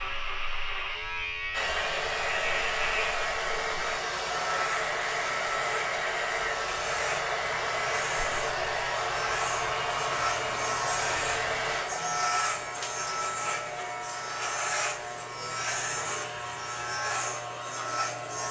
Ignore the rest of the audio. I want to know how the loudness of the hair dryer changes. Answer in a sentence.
The loudness of the hair dryer goes down.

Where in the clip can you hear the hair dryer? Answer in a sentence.
The hair dryer can be heard from 1.5 to 18.4 s.